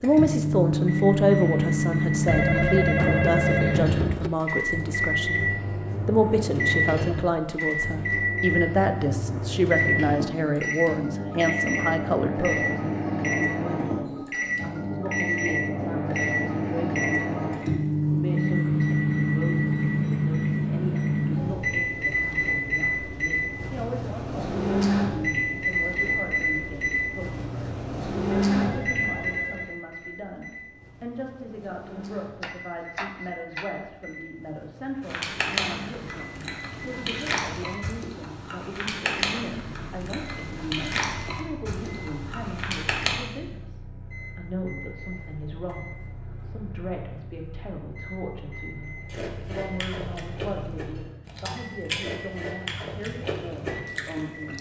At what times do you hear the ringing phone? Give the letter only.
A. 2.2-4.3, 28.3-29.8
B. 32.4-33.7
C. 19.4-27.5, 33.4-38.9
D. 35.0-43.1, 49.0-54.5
A.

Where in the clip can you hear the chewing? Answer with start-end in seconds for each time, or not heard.
35.0-43.1, 49.0-54.5.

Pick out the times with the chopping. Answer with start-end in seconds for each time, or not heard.
32.4-33.7.